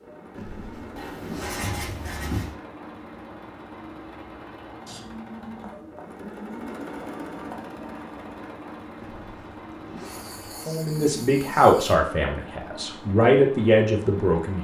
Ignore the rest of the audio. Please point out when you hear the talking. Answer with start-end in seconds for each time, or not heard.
10.7-14.5.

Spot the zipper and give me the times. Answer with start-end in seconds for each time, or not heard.
0.3-1.6, 8.9-10.4.